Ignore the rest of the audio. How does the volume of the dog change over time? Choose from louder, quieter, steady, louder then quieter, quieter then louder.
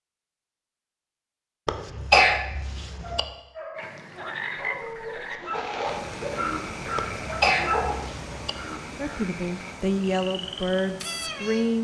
louder.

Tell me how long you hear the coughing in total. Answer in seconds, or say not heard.
3 s.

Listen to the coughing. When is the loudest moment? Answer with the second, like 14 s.
2 s.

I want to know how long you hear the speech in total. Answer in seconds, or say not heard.
3 s.